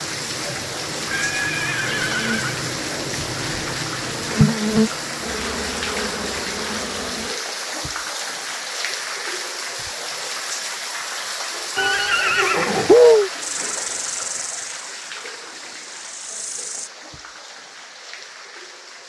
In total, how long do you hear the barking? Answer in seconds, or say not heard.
not heard.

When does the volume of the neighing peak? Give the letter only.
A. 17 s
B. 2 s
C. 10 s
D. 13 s
D.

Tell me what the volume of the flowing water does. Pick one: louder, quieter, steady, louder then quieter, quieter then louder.
quieter.